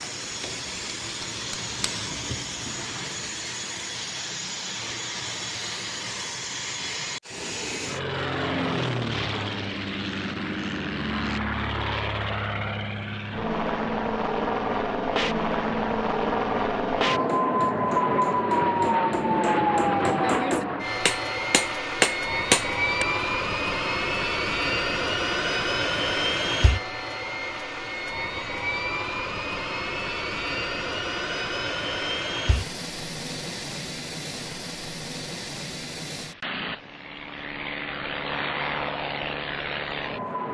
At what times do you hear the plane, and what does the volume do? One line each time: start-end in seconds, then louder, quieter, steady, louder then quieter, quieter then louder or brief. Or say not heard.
0.0-40.4 louder then quieter.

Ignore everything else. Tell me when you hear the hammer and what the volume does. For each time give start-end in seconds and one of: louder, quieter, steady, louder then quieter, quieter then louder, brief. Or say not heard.
0.0-2.9 brief
17.2-23.1 louder.